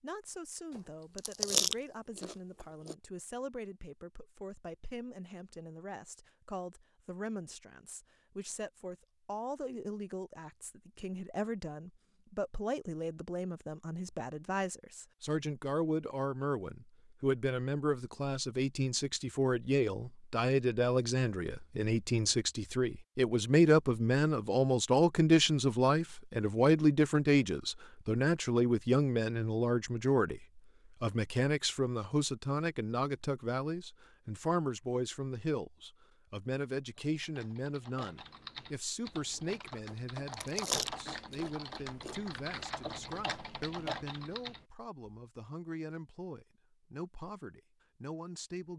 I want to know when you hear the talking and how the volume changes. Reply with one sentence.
You can hear the talking from 0.0 to 48.7 s, getting louder then quieter.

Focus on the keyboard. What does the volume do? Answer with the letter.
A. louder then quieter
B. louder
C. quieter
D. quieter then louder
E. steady
B.